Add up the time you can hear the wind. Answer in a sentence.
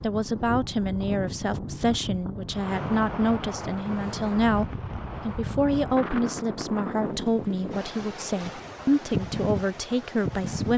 You can hear the wind for 11 seconds altogether.